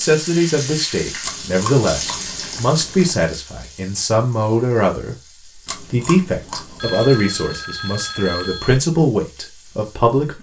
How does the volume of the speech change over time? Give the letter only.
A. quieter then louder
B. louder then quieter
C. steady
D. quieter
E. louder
C.